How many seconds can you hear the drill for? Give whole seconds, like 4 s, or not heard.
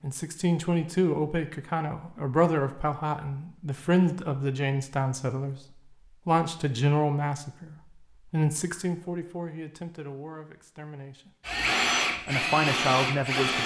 2 s.